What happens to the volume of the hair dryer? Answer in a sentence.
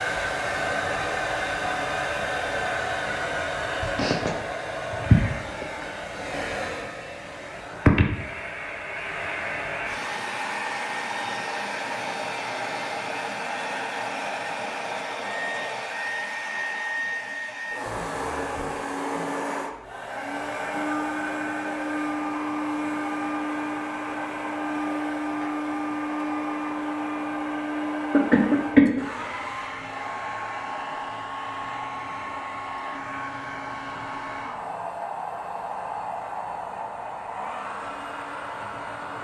The loudness of the hair dryer goes down.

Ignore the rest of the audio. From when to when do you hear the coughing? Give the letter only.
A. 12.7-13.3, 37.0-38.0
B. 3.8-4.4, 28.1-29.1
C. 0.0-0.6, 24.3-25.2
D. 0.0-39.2
B.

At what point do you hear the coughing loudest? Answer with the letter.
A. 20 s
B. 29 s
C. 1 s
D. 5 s
B.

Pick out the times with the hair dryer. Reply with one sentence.
The hair dryer can be heard from 0.0 to 39.2 s.